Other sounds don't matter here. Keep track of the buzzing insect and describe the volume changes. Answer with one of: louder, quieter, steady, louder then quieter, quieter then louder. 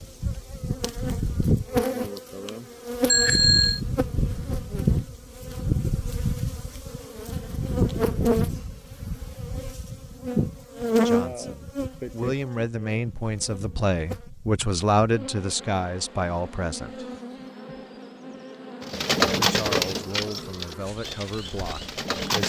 quieter.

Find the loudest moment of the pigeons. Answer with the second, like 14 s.
19 s.